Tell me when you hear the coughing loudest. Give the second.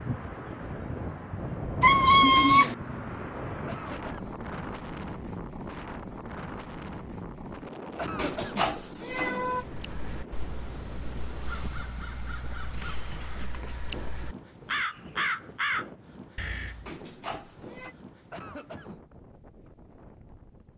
8 s.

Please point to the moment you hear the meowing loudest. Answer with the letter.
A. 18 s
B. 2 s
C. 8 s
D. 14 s
B.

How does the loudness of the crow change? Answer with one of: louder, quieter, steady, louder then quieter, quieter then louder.
louder.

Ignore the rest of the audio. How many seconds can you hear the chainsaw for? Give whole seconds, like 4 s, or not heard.
not heard.